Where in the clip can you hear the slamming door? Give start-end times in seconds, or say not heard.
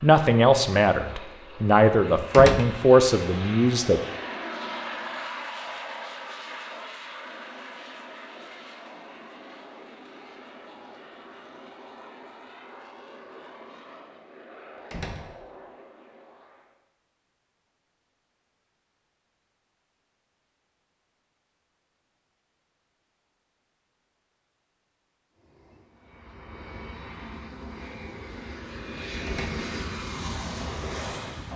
2.3-2.9, 14.9-15.4, 29.2-29.8.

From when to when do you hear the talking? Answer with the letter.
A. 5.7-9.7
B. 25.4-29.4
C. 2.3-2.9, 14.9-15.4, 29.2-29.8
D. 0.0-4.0
D.